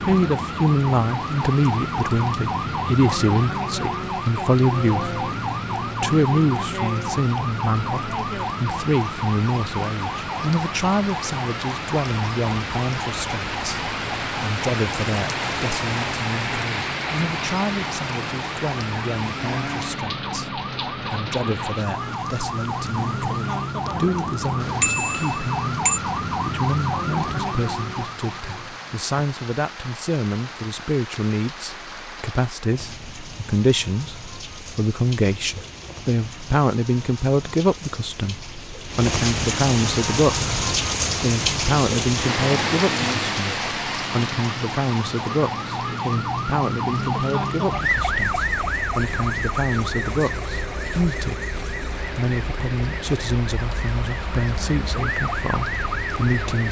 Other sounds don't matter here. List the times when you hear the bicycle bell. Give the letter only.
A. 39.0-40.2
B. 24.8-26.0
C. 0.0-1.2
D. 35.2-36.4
B.